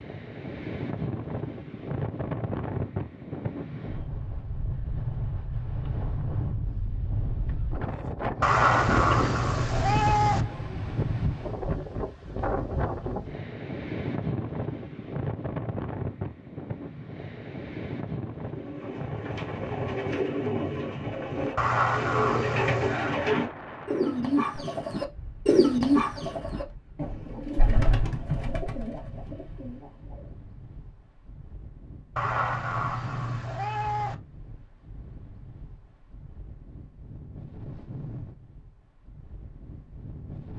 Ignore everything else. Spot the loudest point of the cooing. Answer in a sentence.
The volume of the cooing peaks at 26 seconds.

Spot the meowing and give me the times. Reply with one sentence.
The meowing can be heard from 8.4 to 10.4 s, from 21.6 to 23.1 s and from 32.1 to 34.1 s.